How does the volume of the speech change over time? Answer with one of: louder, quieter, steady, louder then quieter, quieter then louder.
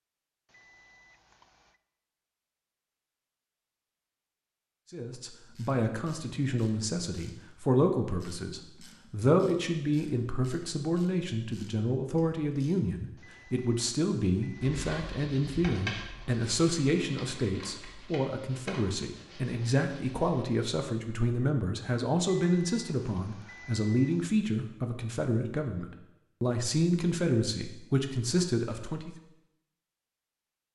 steady.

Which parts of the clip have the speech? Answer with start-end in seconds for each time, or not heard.
4.9-29.1.